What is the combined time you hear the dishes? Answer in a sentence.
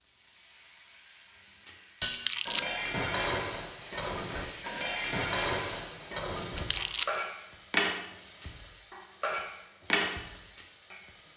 The dishes can be heard for 9 seconds in total.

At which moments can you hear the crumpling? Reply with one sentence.
The crumpling can be heard from 2.1 to 2.8 s and from 6.5 to 7.2 s.